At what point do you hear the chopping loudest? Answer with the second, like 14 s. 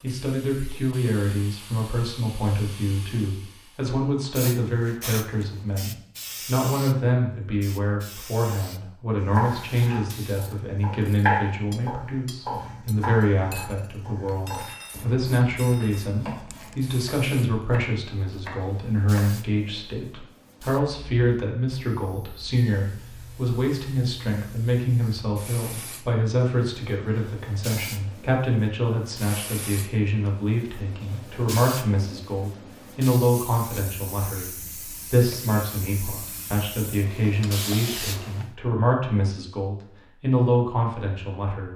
11 s.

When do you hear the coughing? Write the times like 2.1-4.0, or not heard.
not heard.